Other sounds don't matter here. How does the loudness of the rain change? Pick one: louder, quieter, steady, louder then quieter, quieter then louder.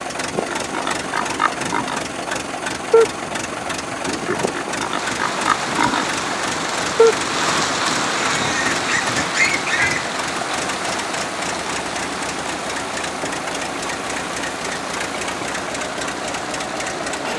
quieter.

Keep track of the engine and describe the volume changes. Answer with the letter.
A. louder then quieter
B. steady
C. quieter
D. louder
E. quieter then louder
B.